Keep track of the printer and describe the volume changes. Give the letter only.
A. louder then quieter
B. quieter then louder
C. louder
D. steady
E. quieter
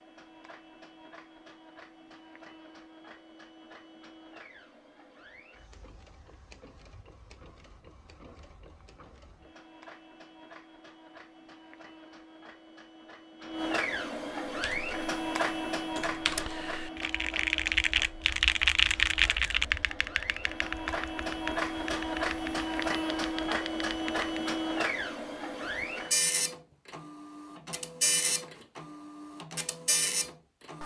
C.